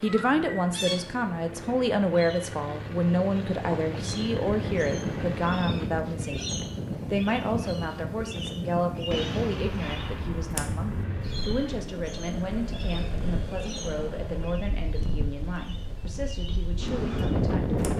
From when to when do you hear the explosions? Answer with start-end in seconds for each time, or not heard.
9.1-10.7.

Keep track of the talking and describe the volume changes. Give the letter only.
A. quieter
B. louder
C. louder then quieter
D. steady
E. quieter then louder
A.